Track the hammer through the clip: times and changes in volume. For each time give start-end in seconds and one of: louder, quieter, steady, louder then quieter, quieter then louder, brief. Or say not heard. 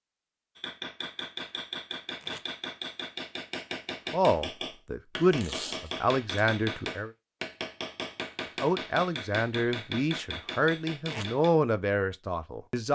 0.6-11.5 steady.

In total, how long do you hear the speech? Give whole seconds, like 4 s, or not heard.
7 s.